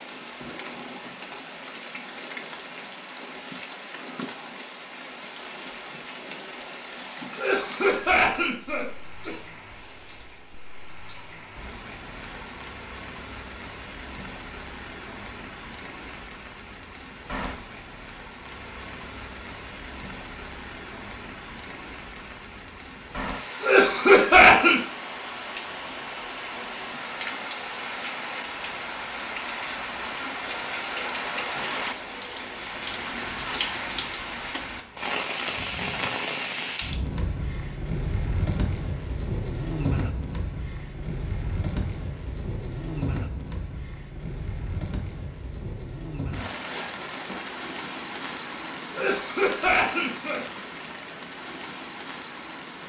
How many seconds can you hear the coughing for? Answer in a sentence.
You can hear the coughing for 5 seconds altogether.